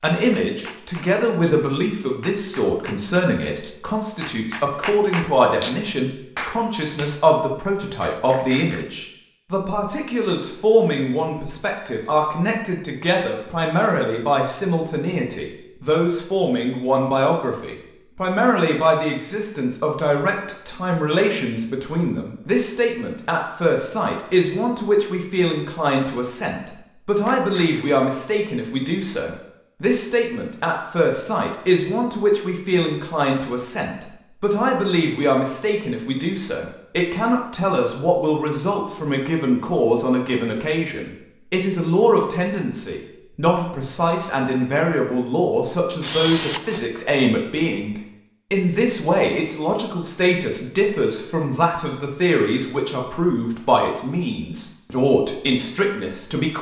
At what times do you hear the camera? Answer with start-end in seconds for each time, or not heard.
8.0-8.8, 27.2-27.9, 46.0-46.9.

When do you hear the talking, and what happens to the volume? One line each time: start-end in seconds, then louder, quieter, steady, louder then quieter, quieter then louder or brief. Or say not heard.
0.0-56.5 steady.